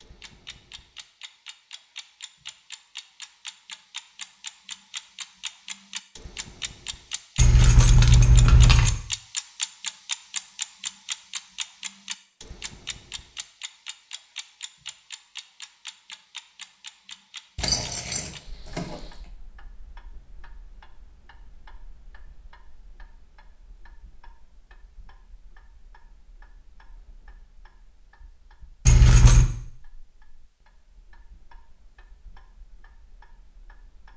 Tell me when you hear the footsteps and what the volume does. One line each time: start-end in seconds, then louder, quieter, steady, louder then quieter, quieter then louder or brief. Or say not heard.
not heard.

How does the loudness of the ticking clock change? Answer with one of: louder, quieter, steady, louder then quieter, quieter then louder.
louder then quieter.